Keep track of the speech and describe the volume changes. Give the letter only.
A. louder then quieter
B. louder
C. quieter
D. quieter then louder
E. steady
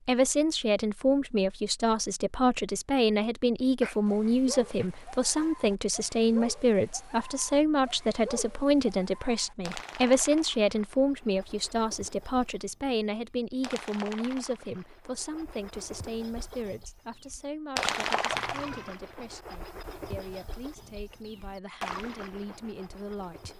C.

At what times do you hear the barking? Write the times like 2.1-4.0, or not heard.
not heard.